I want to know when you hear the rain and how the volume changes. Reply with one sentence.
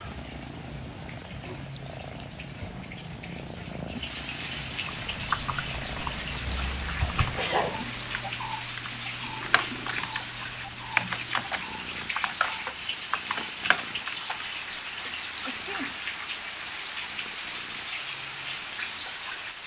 You can hear the rain from 0.0 to 19.6 s, getting louder.